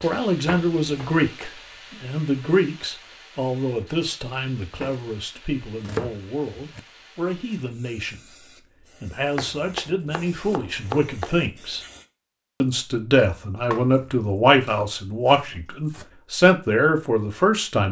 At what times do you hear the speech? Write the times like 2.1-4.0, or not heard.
0.0-8.2, 9.0-11.8, 12.6-17.8.